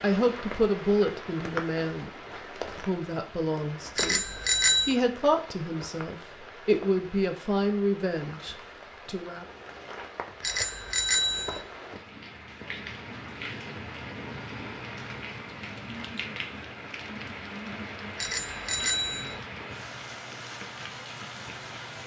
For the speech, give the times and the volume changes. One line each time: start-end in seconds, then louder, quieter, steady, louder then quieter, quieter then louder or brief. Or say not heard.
0.0-2.1 brief
2.8-4.2 brief
4.8-9.4 quieter.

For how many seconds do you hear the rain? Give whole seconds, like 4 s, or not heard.
22 s.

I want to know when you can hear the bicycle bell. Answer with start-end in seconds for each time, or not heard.
4.0-5.0, 10.4-11.6, 18.1-19.4.